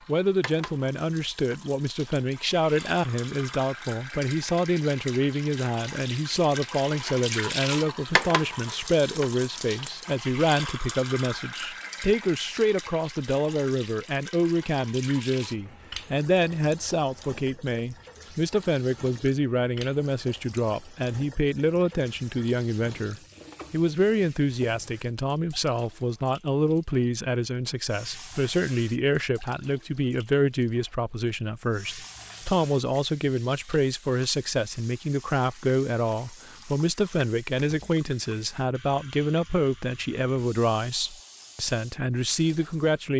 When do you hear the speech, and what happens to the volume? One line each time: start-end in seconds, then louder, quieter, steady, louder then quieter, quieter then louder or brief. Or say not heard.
0.1-43.1 steady.